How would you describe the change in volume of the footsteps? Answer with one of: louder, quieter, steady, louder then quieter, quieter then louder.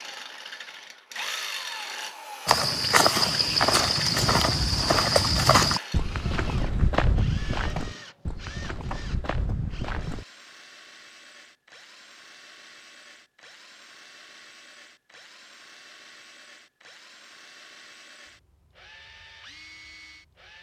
quieter.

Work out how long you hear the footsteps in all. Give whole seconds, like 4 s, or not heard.
8 s.